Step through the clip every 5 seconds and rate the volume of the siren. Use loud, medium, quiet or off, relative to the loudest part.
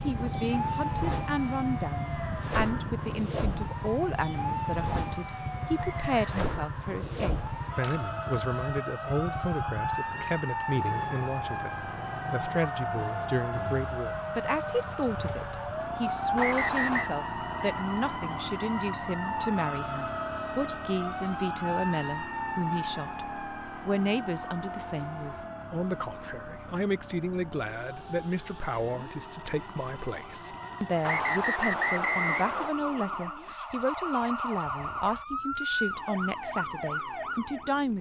loud, loud, loud, loud, loud, medium, loud, loud.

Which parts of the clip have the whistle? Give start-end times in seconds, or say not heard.
5.8-6.4, 16.4-17.1, 31.0-32.8.